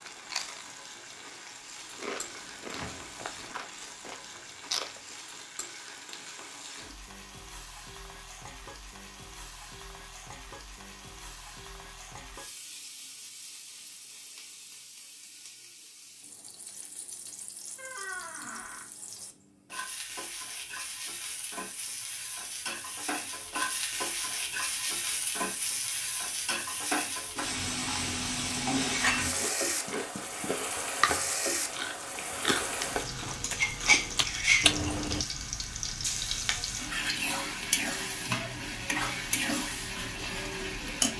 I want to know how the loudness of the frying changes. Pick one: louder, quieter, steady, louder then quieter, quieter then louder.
louder.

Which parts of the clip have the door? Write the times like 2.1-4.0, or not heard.
2.7-3.2, 17.8-18.9, 29.9-30.5.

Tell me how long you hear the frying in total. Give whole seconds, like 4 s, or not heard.
41 s.